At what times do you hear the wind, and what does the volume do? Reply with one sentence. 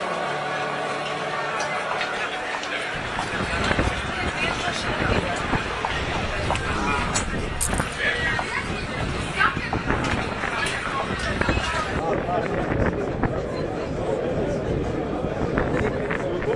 The wind can be heard from 2.9 to 16.5 s, at a steady volume.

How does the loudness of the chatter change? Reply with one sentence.
The volume of the chatter stays about the same.